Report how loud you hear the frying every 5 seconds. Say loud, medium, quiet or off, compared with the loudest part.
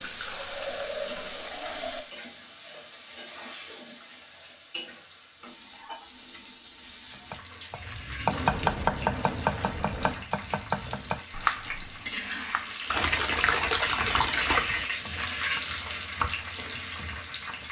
medium, medium, loud, loud.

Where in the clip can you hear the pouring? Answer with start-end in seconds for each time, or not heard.
0.0-2.0, 8.2-10.2, 12.9-14.8.